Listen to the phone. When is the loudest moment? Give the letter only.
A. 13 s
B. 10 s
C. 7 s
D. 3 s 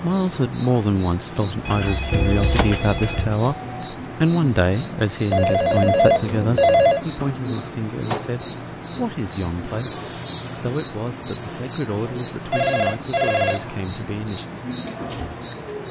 C.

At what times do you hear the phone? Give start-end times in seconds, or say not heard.
1.6-3.4, 5.3-7.0, 12.5-13.8.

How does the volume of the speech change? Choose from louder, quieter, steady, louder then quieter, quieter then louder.
quieter.